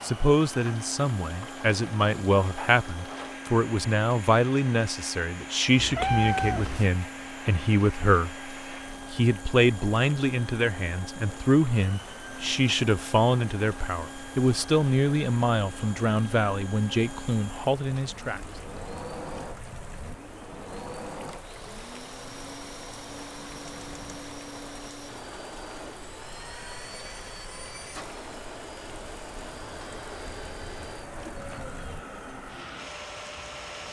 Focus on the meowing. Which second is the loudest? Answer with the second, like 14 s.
6 s.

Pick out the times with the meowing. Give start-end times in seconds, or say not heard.
5.8-6.9, 23.6-24.2.